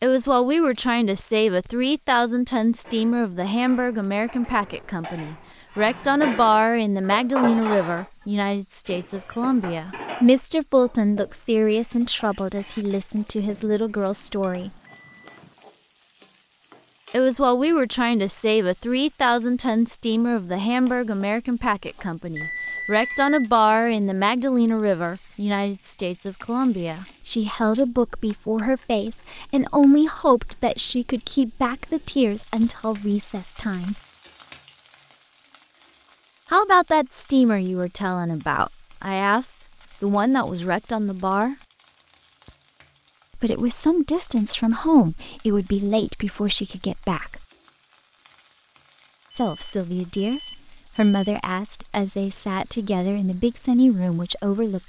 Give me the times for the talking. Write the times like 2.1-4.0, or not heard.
0.0-14.7, 17.1-34.0, 36.5-41.5, 43.4-47.5, 49.4-54.8.